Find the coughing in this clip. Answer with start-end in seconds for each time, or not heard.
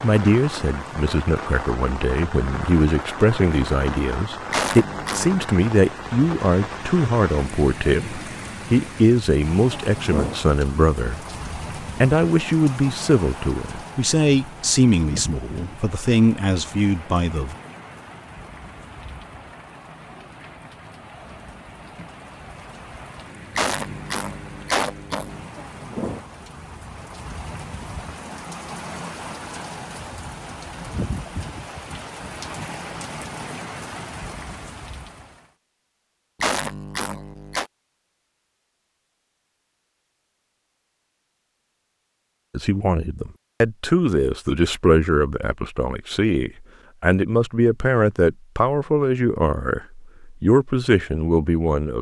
4.5-5.5, 23.6-25.4, 36.4-37.6.